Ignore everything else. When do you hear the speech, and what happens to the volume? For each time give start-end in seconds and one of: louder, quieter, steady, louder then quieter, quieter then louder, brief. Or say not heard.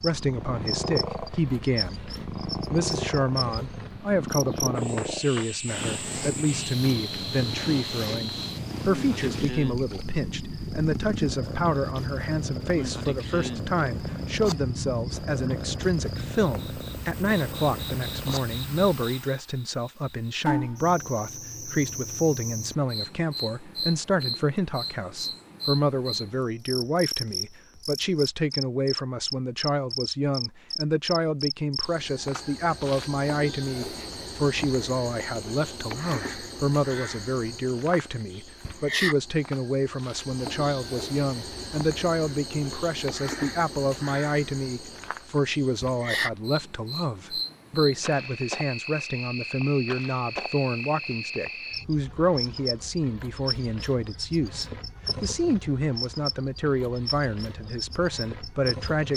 0.0-59.1 steady.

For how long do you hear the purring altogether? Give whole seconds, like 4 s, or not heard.
19 s.